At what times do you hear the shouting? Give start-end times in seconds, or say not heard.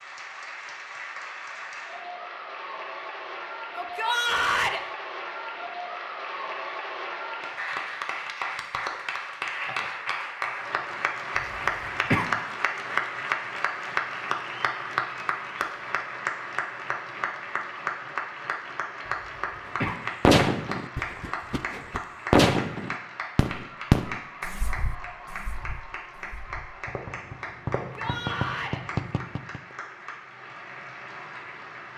3.8-4.8, 27.8-28.8.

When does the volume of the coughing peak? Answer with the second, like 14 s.
12 s.